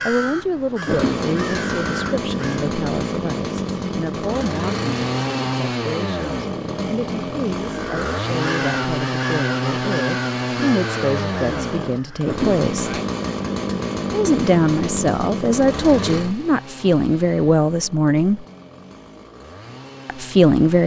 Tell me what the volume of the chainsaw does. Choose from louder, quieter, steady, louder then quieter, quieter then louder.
quieter.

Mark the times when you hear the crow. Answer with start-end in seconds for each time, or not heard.
0.0-2.7, 7.7-13.1.